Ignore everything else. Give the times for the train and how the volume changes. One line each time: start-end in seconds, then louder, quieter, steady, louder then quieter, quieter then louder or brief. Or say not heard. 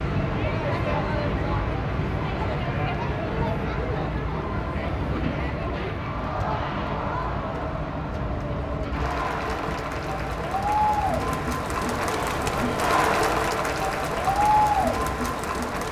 0.0-15.8 quieter.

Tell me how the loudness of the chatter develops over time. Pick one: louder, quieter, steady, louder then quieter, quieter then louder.
louder.